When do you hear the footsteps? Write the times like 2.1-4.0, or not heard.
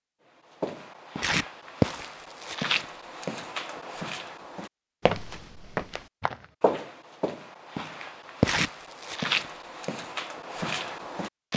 0.6-11.5.